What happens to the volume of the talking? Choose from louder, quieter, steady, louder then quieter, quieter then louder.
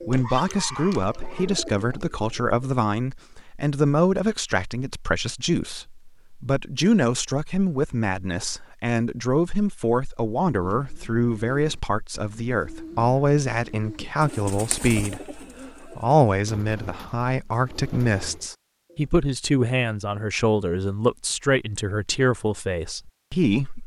steady.